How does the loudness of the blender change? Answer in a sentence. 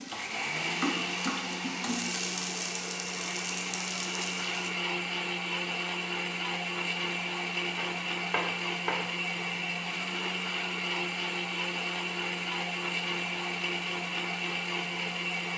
The loudness of the blender stays about the same.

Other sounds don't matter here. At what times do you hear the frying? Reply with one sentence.
The frying can be heard from 0.0 to 4.7 s.